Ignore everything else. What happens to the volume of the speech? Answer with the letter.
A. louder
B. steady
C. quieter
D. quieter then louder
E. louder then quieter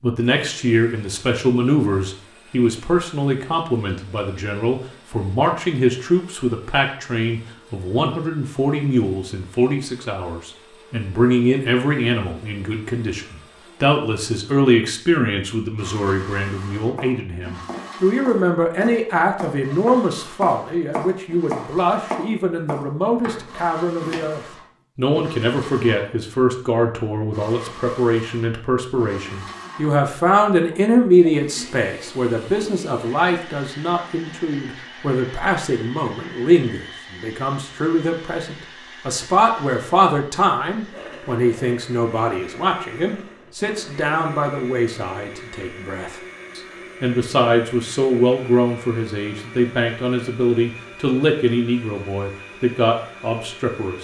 B.